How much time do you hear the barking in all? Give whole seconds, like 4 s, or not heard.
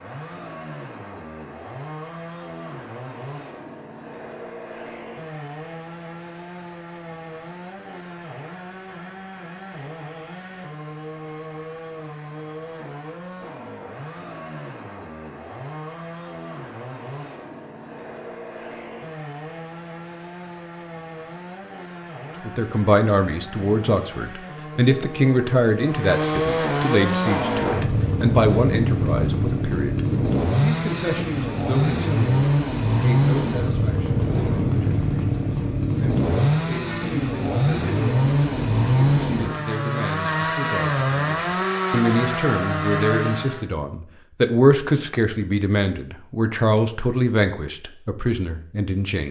not heard.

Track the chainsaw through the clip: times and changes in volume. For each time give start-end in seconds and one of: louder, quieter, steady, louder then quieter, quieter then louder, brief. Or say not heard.
0.0-43.6 louder.